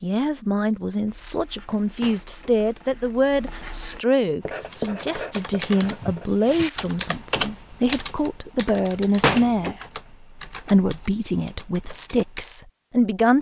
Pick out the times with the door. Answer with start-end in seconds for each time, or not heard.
2.0-2.5, 9.2-9.8.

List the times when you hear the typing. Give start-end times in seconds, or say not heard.
4.4-12.4.